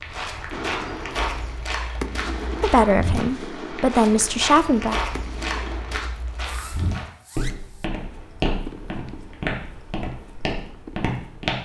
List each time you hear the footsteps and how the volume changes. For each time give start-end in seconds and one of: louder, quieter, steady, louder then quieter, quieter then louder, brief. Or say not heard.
0.0-11.5 steady.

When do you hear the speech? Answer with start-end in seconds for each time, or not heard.
2.6-5.0.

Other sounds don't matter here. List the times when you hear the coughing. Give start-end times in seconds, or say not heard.
not heard.